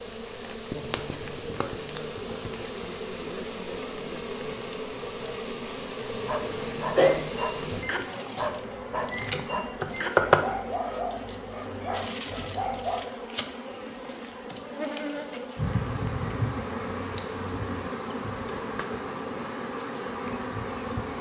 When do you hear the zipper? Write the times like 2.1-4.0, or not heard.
not heard.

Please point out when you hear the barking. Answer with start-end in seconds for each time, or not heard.
6.2-13.1.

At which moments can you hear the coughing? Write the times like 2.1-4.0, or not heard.
6.4-7.2.